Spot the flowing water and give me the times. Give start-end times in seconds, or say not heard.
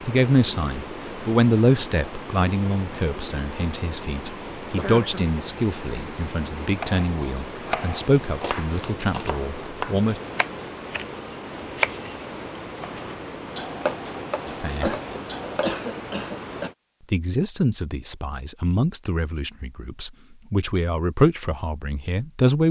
0.0-16.8.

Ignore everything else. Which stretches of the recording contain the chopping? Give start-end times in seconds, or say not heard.
6.8-15.8.